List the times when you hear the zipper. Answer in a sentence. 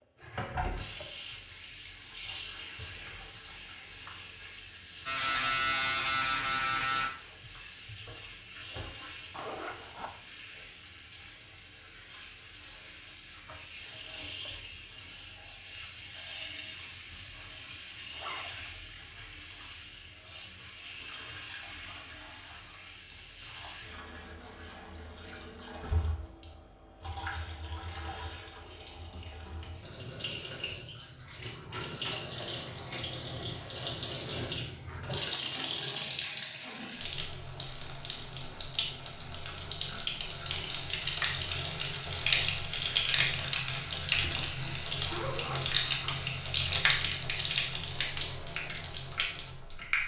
The zipper can be heard from 9.3 to 10.1 s, from 18.1 to 18.6 s and from 44.2 to 46.1 s.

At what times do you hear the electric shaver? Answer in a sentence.
The electric shaver can be heard from 5.0 to 7.1 s.